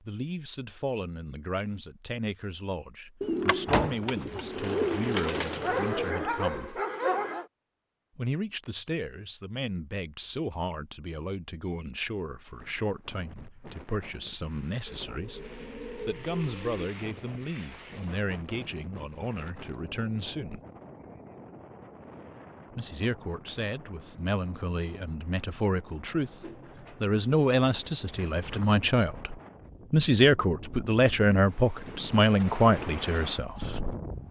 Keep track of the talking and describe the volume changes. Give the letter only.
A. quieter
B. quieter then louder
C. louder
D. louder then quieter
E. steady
C.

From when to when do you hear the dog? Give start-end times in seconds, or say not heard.
5.2-7.5.